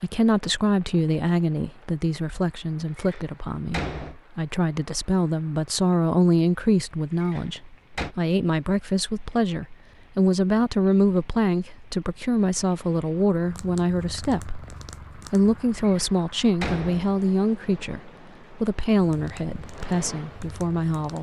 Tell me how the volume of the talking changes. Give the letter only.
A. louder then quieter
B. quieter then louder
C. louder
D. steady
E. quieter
D.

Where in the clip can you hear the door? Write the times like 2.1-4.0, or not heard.
3.0-4.2, 7.2-8.2, 15.8-17.2.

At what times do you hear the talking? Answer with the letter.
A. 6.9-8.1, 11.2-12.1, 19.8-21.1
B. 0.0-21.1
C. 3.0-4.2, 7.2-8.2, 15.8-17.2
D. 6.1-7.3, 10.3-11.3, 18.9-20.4
B.